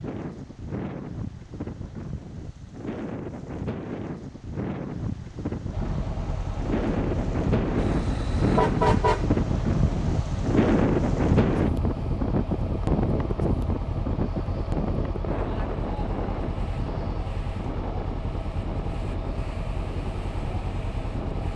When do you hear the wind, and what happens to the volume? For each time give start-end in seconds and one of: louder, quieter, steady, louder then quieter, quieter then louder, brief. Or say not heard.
0.0-21.5 louder then quieter.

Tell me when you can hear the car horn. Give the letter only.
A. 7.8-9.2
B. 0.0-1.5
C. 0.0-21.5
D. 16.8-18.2
A.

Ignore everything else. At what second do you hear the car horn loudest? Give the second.
9 s.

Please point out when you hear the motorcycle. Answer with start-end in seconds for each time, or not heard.
5.7-21.5.